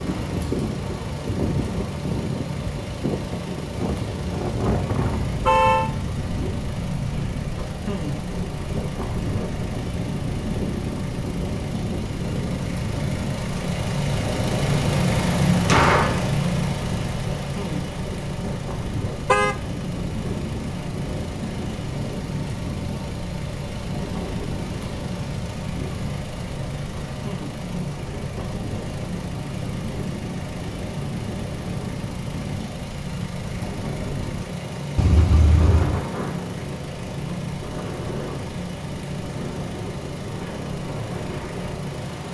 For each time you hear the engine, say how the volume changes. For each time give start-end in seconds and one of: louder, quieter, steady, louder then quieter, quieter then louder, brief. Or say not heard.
0.0-42.2 louder then quieter.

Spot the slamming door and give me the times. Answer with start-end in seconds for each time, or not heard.
15.5-16.2.